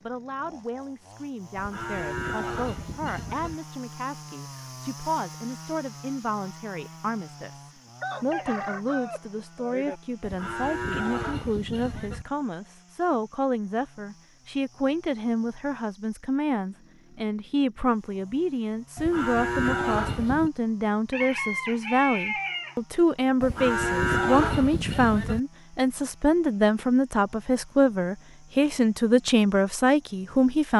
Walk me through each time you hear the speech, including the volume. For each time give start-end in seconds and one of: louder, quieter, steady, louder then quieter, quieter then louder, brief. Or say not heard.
0.0-30.7 louder.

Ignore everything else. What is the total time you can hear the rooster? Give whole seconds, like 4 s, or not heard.
4 s.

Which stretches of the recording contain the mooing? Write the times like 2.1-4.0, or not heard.
1.6-3.5, 10.2-12.2, 18.9-20.5, 23.4-25.4.